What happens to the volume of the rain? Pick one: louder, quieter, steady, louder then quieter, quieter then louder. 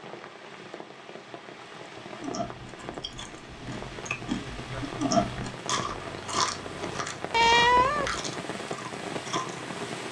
louder.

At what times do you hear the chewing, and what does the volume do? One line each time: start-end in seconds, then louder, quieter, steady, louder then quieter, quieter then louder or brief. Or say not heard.
2.2-9.7 louder then quieter.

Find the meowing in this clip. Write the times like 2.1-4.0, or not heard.
7.3-8.2.